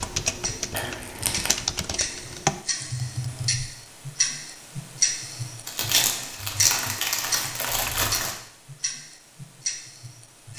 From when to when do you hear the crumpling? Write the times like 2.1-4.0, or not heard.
0.7-1.5, 5.7-8.4.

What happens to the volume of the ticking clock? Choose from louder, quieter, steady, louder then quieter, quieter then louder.
louder then quieter.